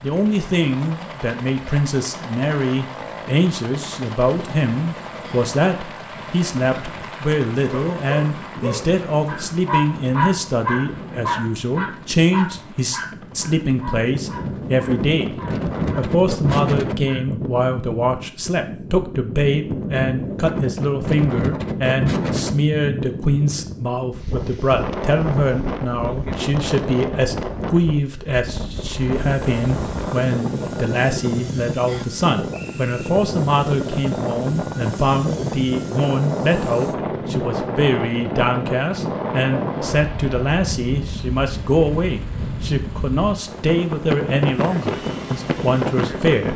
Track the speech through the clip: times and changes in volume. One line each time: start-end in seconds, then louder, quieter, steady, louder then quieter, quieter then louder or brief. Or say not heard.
0.0-46.5 steady.